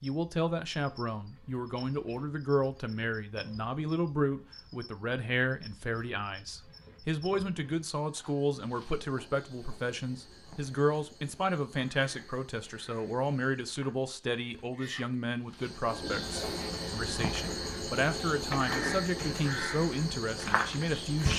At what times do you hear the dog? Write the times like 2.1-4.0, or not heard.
not heard.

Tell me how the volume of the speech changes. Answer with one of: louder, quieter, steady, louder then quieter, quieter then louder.
steady.